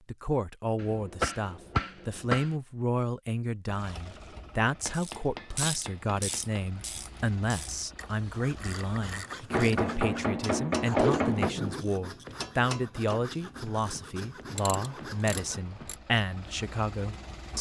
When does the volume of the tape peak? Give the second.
11 s.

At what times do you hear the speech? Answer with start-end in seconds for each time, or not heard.
0.1-17.5.